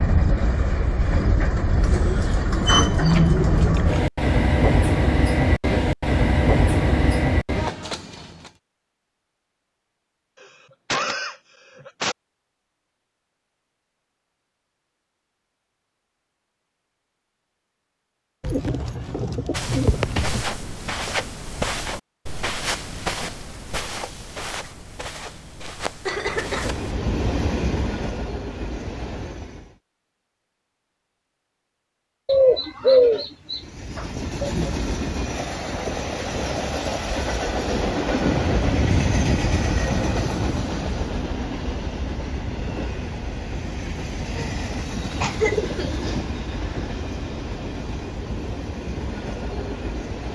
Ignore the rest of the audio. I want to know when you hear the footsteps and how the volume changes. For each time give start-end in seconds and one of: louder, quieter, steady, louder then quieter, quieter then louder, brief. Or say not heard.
19.5-26.9 quieter.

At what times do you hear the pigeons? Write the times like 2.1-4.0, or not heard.
1.8-3.9, 18.4-20.4, 32.2-34.7, 45.0-46.2.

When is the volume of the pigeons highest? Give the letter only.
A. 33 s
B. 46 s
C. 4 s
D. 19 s
A.